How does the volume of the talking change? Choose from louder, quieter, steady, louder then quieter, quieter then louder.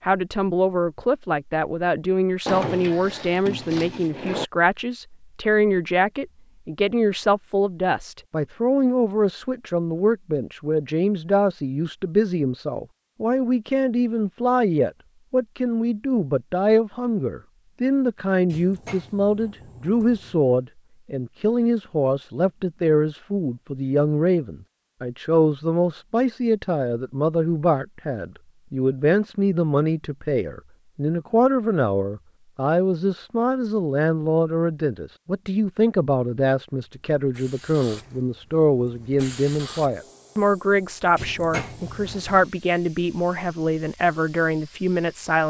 steady.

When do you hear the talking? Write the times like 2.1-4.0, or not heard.
0.0-45.4.